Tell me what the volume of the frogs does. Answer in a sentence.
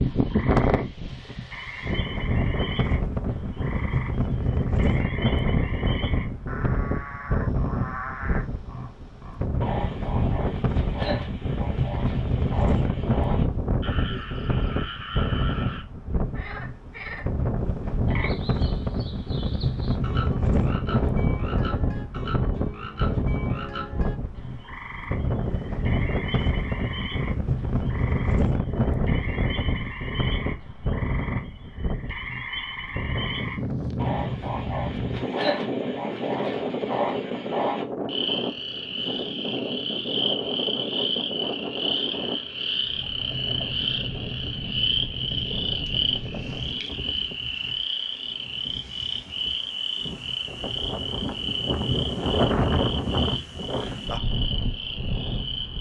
The volume of the frogs goes up.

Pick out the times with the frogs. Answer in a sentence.
You can hear the frogs from 0.0 to 55.7 s.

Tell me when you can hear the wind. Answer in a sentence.
The wind can be heard from 0.0 to 55.7 s.